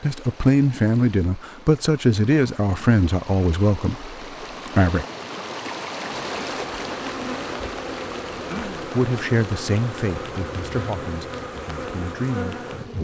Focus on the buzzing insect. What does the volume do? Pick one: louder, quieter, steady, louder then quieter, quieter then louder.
steady.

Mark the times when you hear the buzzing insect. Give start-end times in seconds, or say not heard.
6.1-12.9.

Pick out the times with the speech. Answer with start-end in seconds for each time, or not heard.
0.0-5.0, 8.8-12.9.